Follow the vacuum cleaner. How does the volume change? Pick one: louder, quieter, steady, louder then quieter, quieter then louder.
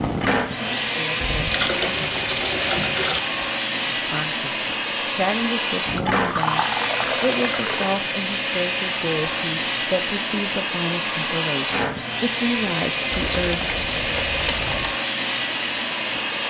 steady.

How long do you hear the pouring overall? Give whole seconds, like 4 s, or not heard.
6 s.